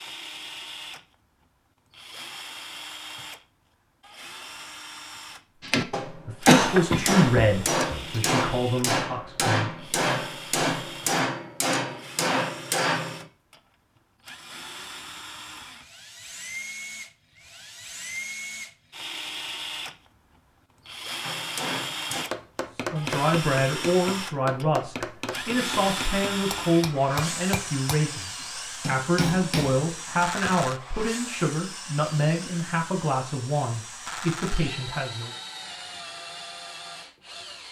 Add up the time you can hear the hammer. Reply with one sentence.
You can hear the hammer for 17 seconds altogether.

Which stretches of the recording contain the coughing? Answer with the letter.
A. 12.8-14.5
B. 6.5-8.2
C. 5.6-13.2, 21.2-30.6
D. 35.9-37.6
B.